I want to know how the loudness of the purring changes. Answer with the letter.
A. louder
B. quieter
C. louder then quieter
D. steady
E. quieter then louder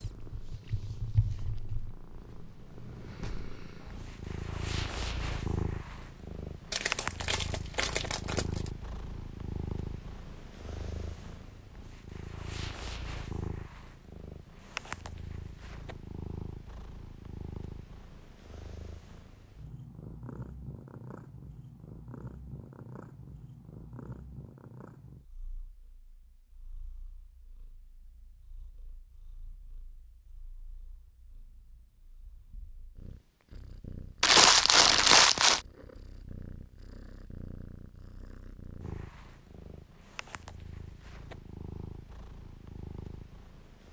E.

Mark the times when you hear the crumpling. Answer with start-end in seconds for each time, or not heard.
6.7-8.7, 34.2-35.6.